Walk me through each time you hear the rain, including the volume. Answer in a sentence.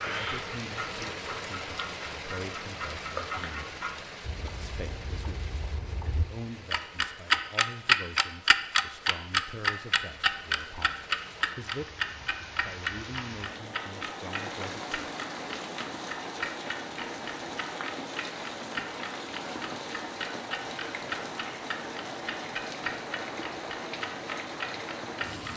The rain can be heard from 0.0 to 25.5 s, getting quieter then louder.